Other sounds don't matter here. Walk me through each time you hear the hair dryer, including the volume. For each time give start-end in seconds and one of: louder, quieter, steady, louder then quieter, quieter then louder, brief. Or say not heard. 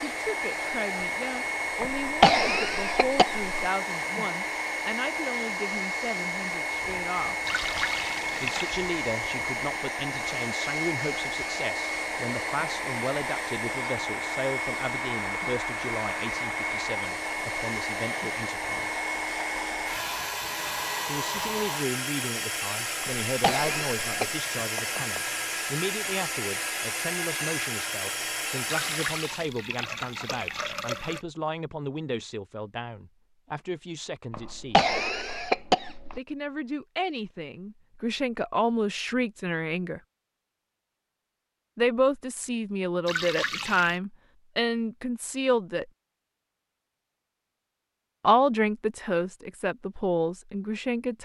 0.0-29.5 steady.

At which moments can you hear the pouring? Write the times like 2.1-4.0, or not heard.
7.5-8.8, 28.6-31.2, 43.0-44.0.